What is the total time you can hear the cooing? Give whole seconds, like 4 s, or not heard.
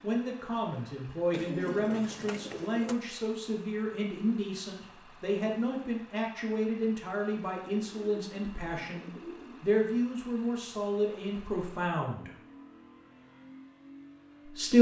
4 s.